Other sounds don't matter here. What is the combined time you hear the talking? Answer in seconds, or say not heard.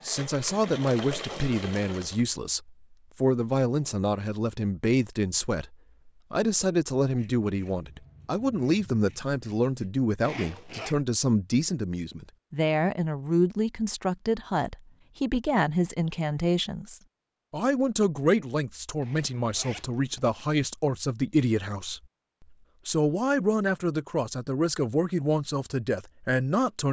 26 s.